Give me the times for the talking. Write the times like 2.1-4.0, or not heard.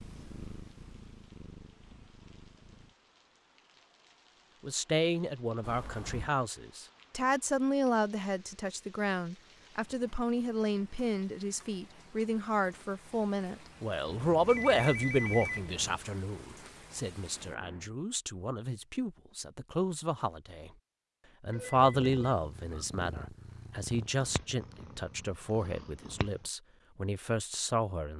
4.6-20.7, 21.4-28.1.